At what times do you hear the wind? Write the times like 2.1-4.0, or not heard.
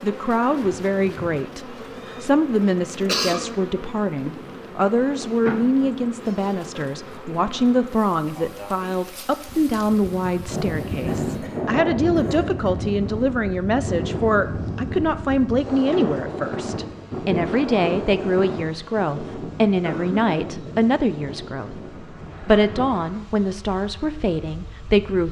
10.4-25.2.